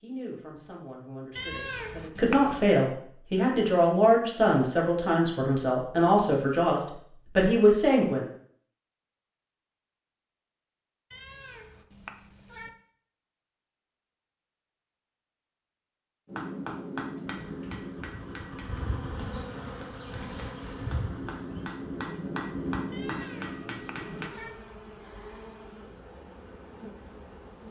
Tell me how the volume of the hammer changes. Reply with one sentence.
The loudness of the hammer goes down, then up.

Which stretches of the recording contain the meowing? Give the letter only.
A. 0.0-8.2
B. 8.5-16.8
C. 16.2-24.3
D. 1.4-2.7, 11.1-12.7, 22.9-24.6
D.